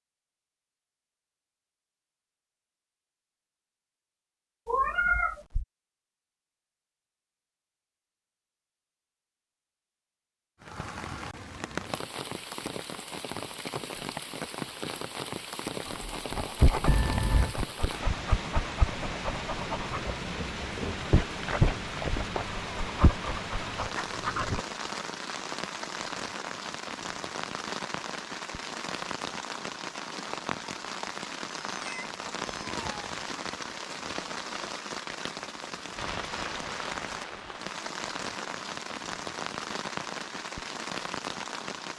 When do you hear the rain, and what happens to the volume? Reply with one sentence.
You can hear the rain from 10.6 to 41.9 s, at a steady volume.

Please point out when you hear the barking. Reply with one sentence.
You can hear the barking from 15.8 to 24.6 s.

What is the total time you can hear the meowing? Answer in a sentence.
The meowing can be heard for 3 seconds in total.